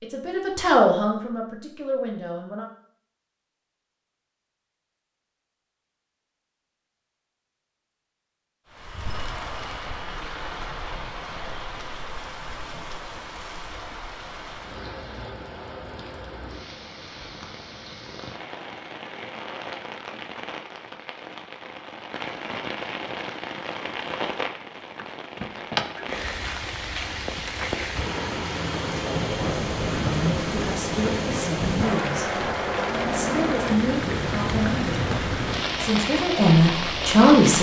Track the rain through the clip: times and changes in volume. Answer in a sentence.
The rain can be heard from 8.7 to 37.5 s, getting louder.